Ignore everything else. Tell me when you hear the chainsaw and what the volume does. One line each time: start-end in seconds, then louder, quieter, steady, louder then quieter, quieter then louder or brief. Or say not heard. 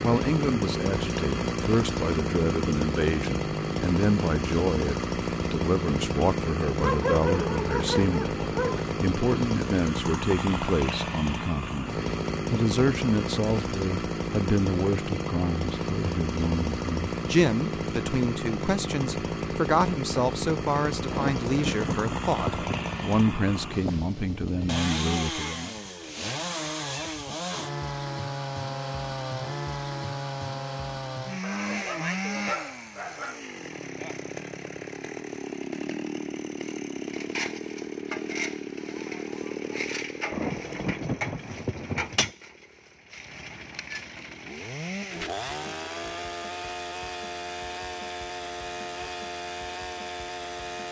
0.0-50.8 quieter.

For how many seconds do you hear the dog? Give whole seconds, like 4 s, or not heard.
4 s.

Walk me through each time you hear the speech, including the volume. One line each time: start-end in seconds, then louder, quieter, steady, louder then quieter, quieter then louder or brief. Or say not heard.
0.0-25.8 steady.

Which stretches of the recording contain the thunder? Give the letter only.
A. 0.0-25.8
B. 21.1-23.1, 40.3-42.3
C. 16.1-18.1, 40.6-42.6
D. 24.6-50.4
B.